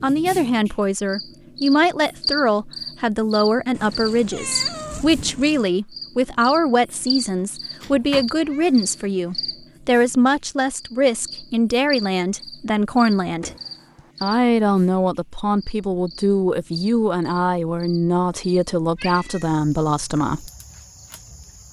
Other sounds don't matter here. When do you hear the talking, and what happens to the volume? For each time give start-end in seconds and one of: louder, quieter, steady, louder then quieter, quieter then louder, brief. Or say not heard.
0.0-13.5 steady
14.2-20.5 steady.